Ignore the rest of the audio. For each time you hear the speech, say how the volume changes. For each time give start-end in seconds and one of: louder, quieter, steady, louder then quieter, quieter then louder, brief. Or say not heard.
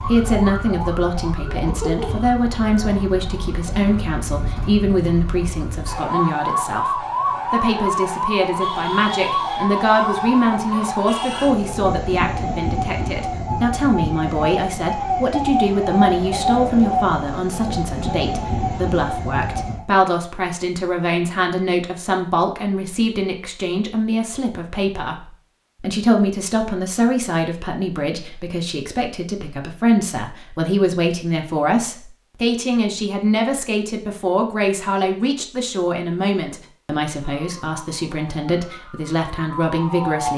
0.0-40.3 steady.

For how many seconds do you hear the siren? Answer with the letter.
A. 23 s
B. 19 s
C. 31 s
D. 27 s
A.